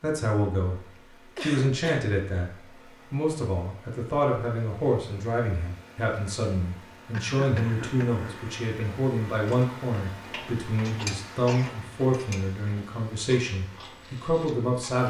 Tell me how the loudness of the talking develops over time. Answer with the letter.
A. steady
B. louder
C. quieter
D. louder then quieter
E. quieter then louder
A.